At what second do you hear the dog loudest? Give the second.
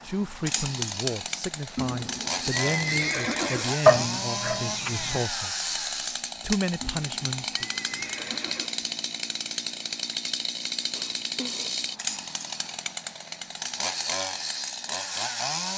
4 s.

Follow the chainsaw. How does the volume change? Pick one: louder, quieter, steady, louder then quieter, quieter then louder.
steady.